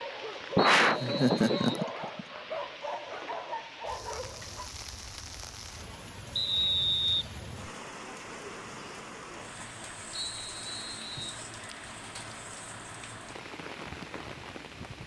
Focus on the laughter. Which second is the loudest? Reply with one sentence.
The loudest moment of the laughter is at 1 second.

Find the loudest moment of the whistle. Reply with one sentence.
The volume of the whistle peaks at 7 seconds.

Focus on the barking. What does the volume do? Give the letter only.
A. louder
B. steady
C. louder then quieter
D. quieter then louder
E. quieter
B.